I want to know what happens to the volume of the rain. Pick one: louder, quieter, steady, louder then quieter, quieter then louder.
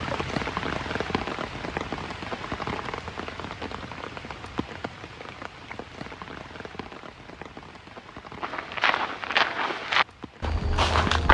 quieter.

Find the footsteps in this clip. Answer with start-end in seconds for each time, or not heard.
8.4-11.2.